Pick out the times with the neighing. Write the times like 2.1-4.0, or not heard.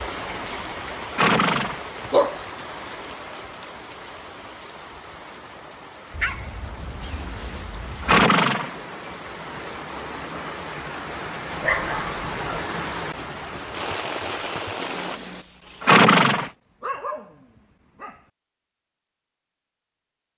0.1-1.8, 7.0-8.7, 14.8-16.5.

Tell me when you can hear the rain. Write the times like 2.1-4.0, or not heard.
0.0-15.2.